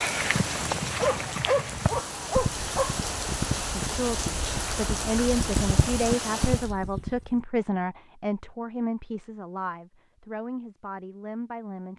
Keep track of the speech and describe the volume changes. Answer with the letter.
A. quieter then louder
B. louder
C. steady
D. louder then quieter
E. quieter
E.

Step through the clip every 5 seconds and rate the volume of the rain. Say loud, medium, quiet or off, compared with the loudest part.
loud, loud, off.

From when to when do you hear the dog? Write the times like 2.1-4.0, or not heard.
0.9-3.0.